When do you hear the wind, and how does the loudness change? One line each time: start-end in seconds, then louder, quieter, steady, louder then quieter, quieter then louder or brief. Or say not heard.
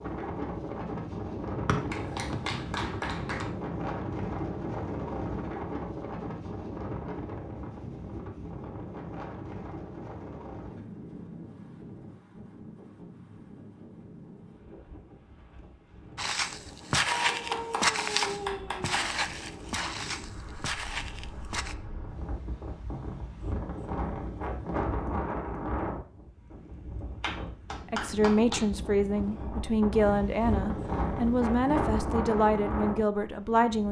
0.0-33.8 quieter then louder.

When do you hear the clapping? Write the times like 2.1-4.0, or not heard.
1.9-3.5, 17.1-19.1, 27.2-28.6.